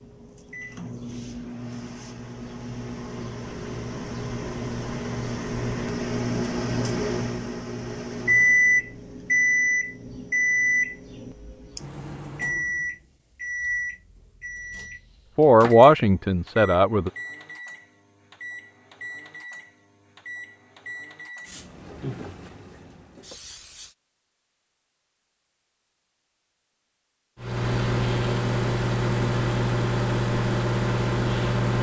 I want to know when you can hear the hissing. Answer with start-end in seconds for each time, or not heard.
21.4-23.9.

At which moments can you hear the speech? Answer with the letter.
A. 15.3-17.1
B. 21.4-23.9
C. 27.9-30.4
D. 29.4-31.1
A.